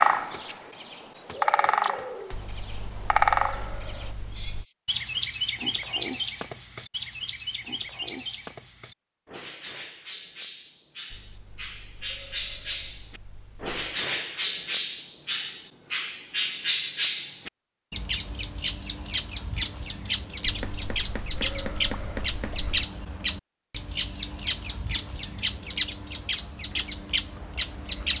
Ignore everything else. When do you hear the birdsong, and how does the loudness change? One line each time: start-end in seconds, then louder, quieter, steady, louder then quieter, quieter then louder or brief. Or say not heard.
0.0-28.1 quieter then louder.